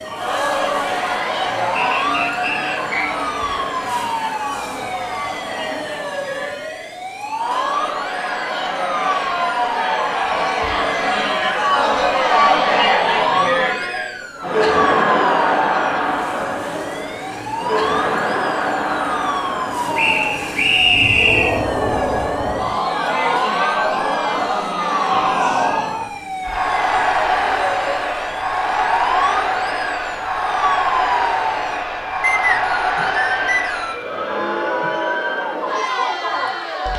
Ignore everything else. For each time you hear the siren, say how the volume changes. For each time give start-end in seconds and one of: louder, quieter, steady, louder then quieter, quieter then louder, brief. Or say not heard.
0.0-36.9 steady.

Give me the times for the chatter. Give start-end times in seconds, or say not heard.
0.0-36.9.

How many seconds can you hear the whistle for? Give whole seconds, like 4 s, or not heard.
5 s.